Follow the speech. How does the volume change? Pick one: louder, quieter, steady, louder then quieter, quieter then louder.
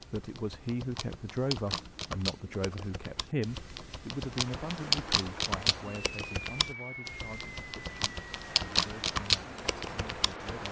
quieter.